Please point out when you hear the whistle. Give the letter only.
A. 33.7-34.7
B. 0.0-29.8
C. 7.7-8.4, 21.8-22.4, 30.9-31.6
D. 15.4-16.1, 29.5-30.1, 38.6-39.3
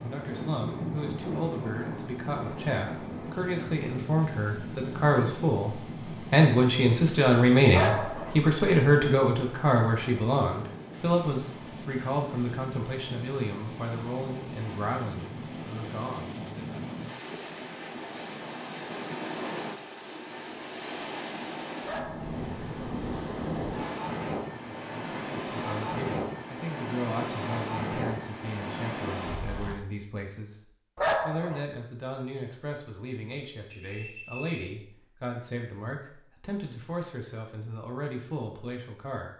A.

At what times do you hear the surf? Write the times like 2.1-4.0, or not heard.
0.0-29.8.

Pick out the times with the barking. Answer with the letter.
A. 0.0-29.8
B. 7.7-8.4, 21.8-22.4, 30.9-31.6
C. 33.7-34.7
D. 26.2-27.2
B.